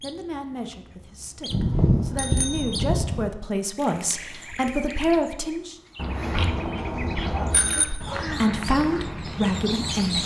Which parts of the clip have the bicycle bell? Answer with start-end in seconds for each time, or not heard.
1.5-3.2, 6.0-7.8.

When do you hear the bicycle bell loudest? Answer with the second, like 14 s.
2 s.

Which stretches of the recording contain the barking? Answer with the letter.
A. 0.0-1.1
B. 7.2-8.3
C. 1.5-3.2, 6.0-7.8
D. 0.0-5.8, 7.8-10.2
B.